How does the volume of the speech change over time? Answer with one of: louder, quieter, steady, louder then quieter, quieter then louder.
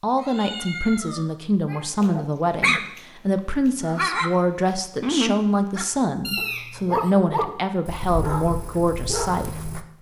steady.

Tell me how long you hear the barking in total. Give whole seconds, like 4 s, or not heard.
6 s.